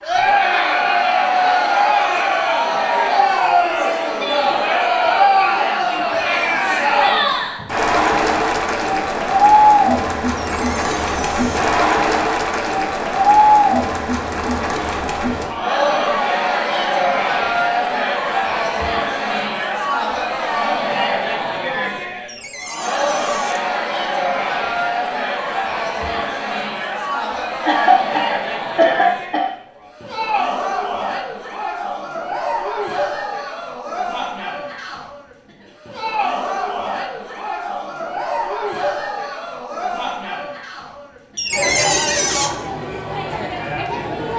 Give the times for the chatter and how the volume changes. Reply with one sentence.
The chatter can be heard from 0.0 to 44.3 s, getting quieter.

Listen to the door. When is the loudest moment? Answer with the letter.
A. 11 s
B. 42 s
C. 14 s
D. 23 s
B.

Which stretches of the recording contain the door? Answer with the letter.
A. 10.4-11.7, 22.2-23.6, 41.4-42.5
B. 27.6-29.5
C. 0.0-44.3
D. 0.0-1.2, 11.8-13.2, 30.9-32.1
A.